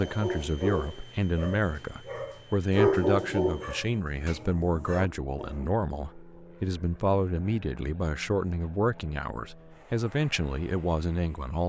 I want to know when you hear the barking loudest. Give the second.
3 s.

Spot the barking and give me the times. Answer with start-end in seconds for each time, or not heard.
0.0-5.7.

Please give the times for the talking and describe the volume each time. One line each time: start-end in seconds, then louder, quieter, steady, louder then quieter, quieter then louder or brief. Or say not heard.
0.0-11.6 steady.